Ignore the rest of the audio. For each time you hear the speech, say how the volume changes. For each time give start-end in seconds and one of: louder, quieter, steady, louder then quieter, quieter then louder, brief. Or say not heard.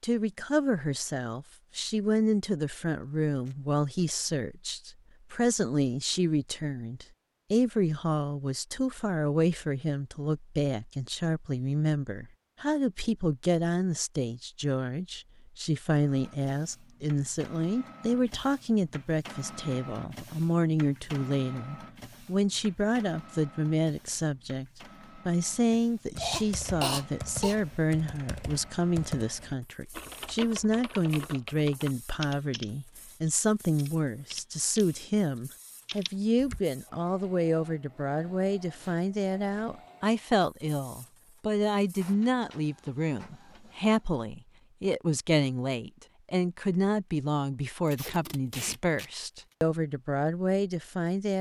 0.0-51.3 steady.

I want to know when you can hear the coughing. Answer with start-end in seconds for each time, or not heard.
26.1-27.6.